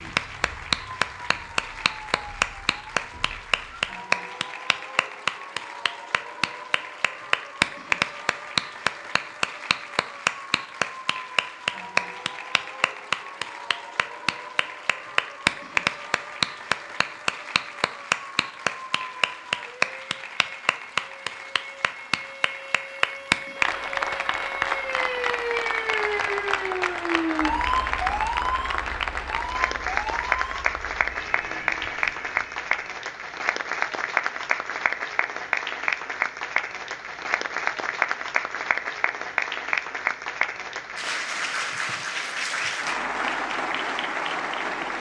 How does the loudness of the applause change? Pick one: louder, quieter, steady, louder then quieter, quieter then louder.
steady.